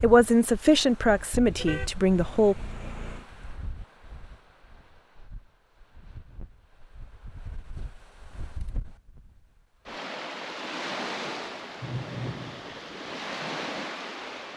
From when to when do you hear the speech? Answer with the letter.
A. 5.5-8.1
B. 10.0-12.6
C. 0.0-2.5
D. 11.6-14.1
C.